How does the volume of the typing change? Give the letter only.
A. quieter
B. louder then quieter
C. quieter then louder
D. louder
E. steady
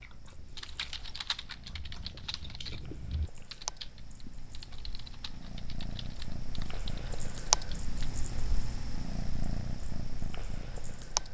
A.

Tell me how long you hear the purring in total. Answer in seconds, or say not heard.
11 s.